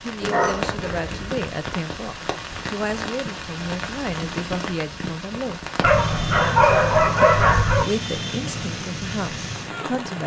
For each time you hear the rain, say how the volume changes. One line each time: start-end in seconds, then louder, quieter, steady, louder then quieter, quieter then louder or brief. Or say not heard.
0.0-10.2 steady.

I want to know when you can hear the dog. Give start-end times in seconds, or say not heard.
0.2-1.4, 5.8-7.8.